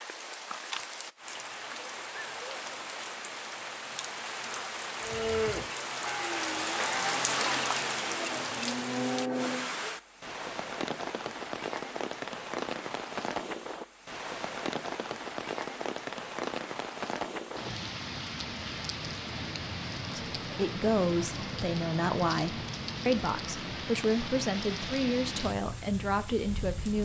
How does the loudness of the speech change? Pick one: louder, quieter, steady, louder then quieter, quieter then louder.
steady.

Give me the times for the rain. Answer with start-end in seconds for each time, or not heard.
0.0-27.0.